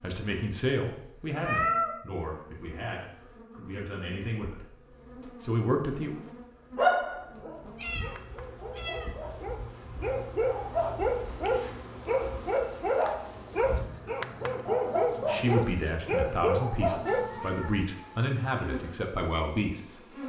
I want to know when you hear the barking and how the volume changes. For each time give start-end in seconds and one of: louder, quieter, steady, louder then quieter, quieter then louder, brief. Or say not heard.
6.8-17.3 louder.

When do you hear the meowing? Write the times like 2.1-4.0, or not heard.
1.4-1.9, 7.8-9.2, 17.1-18.3.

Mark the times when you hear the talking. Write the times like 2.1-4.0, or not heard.
0.0-4.7, 5.4-6.2, 15.2-20.1.